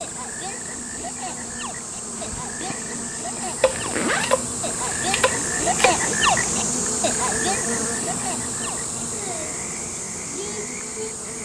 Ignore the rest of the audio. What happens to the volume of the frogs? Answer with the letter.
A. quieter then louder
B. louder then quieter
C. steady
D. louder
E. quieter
B.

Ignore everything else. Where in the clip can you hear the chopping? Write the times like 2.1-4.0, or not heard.
3.6-6.0.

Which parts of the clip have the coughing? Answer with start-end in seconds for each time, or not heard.
not heard.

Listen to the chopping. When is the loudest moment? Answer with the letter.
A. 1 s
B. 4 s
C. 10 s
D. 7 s
B.